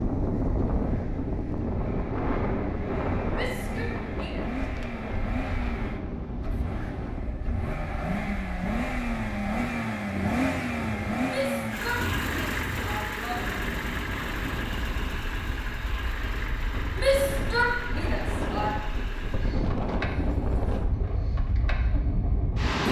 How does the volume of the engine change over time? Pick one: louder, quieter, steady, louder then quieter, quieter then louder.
louder then quieter.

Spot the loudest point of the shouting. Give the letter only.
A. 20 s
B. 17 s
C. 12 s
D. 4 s
B.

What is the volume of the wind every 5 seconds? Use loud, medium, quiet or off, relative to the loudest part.
loud, medium, medium, medium, loud.